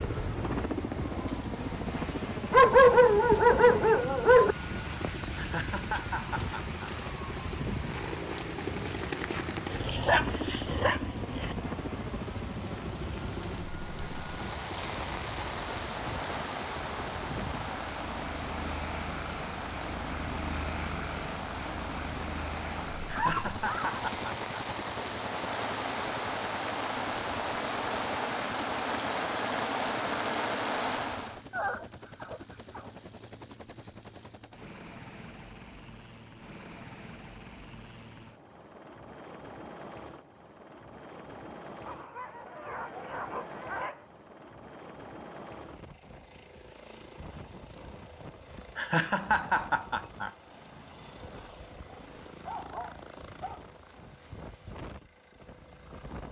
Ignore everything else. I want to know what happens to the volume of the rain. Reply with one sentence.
The volume of the rain goes up.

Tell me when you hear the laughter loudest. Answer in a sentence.
The volume of the laughter peaks at 49 seconds.